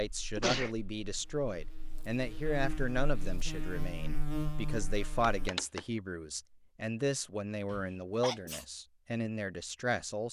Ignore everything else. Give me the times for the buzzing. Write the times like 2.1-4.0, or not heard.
0.0-5.5.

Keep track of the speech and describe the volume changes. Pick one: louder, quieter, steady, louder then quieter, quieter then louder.
steady.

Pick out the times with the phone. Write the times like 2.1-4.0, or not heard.
5.2-5.8.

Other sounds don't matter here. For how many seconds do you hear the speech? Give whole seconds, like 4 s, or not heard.
10 s.